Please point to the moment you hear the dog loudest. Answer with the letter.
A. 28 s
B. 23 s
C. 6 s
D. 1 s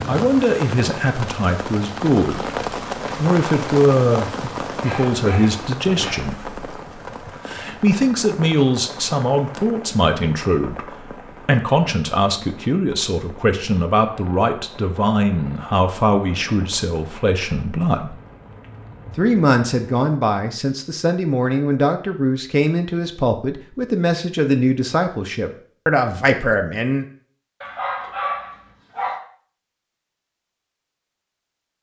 A.